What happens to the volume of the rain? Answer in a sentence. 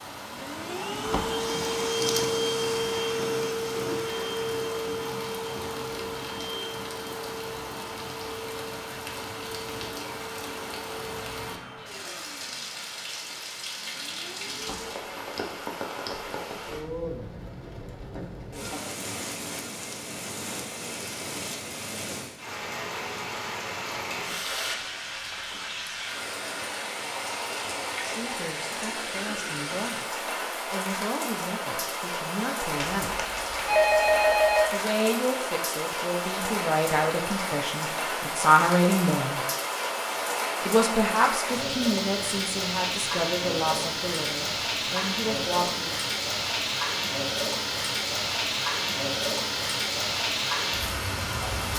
The loudness of the rain goes up.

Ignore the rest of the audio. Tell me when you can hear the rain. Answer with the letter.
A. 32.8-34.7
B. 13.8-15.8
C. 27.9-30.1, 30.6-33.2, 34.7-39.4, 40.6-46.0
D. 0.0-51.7
D.